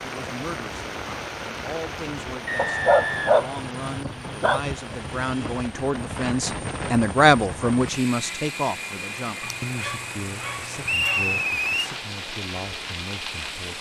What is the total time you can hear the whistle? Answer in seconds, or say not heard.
2 s.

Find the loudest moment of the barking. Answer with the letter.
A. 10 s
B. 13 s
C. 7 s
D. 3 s
D.